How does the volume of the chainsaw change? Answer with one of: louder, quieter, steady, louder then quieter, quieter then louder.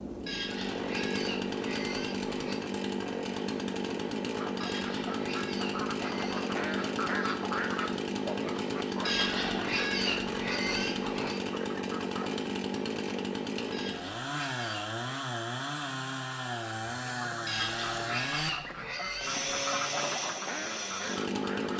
steady.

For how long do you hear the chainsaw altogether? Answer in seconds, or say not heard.
22 s.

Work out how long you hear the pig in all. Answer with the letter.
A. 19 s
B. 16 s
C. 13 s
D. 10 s
D.